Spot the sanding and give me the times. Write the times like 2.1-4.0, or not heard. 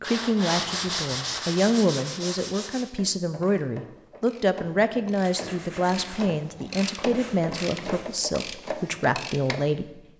0.0-2.9, 5.2-8.1.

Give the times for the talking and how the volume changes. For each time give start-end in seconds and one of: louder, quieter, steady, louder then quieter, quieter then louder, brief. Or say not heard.
0.0-9.9 steady.